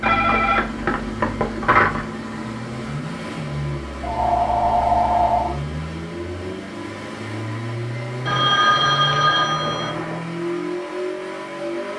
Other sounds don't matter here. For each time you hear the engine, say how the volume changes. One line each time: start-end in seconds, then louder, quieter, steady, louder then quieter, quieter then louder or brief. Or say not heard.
0.0-11.9 steady.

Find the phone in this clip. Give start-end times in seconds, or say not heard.
0.0-2.0, 4.0-5.5, 8.2-10.2.